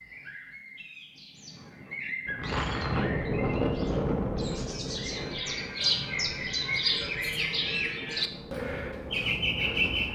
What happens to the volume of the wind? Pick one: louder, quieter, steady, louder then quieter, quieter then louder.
quieter.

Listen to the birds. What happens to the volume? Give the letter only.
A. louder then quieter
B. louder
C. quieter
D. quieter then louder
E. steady
B.